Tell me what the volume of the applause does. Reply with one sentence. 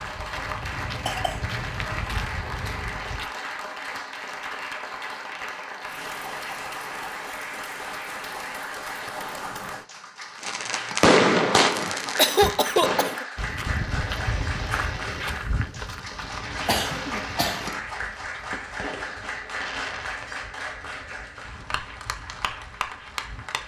The loudness of the applause stays about the same.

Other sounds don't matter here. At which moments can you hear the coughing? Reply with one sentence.
The coughing can be heard from 0.8 to 2.3 s, from 11.8 to 13.2 s and from 16.6 to 17.7 s.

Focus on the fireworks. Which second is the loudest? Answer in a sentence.
The loudest moment of the fireworks is at 11 seconds.